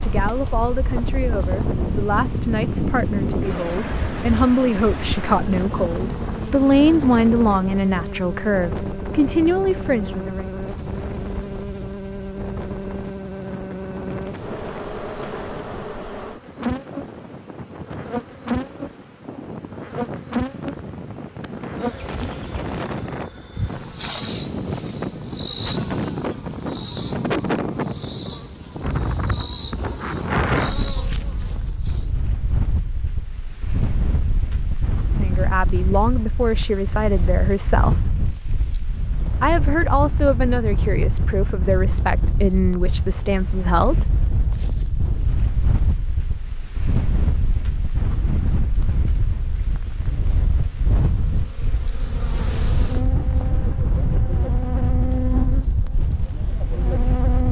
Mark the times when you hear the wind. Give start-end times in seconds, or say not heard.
0.0-57.4.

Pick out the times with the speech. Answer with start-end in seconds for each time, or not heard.
0.0-10.4, 35.1-38.1, 39.4-44.1.